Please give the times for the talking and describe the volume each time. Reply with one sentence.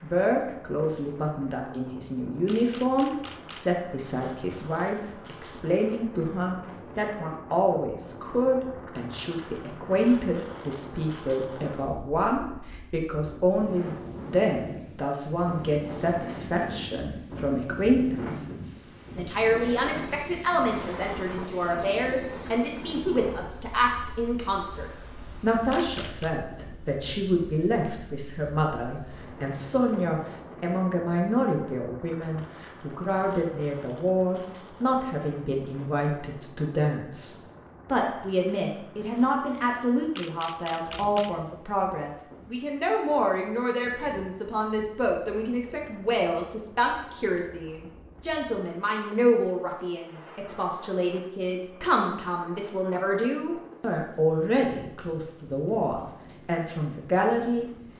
You can hear the talking from 0.0 to 57.7 s, at a steady volume.